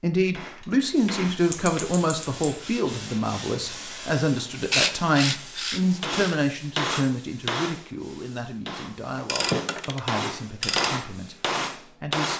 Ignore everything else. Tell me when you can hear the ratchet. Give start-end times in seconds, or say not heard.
1.5-2.5, 4.7-6.3, 9.2-10.9.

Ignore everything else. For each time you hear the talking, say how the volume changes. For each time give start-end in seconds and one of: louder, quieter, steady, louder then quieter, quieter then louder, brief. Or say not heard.
0.0-12.3 quieter.